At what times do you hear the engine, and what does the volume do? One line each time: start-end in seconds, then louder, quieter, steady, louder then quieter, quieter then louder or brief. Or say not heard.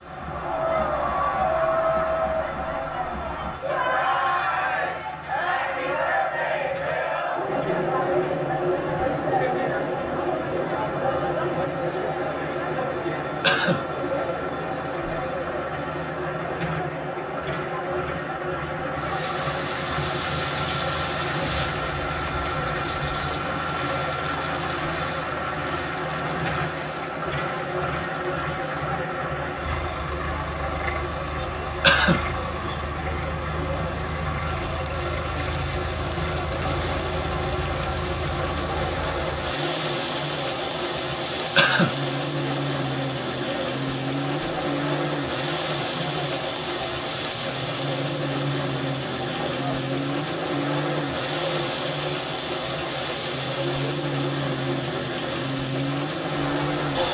0.0-57.0 louder.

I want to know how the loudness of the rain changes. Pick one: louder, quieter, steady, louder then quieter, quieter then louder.
quieter then louder.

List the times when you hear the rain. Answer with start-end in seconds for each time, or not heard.
18.9-57.0.